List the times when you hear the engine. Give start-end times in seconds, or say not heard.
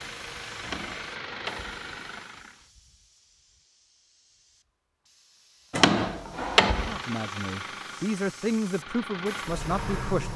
0.0-2.6, 6.7-10.3.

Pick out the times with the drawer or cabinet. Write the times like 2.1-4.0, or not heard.
0.6-2.2, 5.7-7.0.